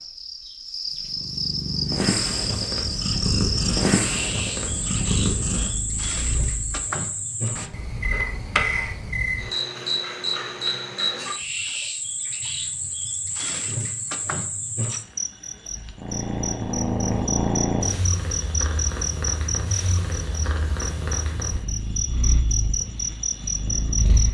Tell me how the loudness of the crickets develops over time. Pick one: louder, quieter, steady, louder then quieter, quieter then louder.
steady.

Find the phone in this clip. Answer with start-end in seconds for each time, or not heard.
8.0-8.9.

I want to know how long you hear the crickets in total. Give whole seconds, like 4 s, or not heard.
24 s.